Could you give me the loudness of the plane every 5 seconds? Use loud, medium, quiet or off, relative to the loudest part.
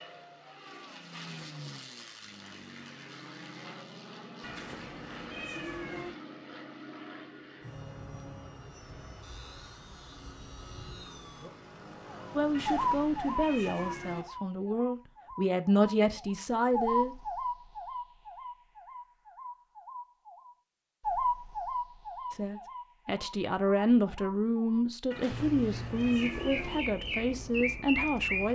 loud, loud, loud, off, off, off.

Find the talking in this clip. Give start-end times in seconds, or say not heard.
12.3-17.1, 22.3-28.5.